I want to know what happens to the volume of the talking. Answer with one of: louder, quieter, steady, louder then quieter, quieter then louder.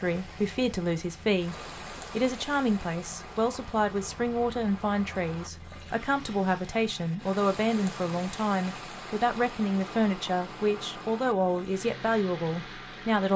steady.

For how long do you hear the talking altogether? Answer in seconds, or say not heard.
13 s.